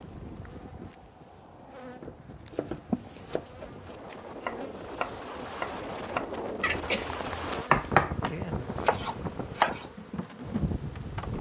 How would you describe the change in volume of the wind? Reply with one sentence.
The loudness of the wind goes up.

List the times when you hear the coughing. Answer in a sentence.
You can hear the coughing from 2.9 to 3.8 s and from 6.6 to 7.6 s.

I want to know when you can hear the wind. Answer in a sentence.
The wind can be heard from 0.0 to 11.3 s.